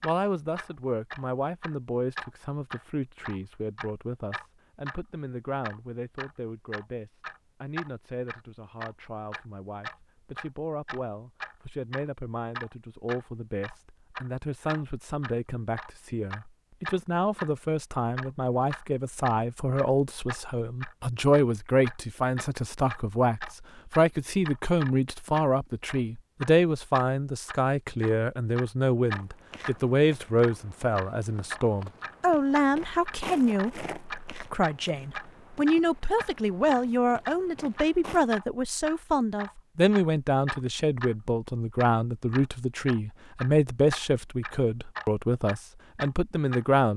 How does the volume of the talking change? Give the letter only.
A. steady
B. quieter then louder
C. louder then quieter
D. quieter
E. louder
E.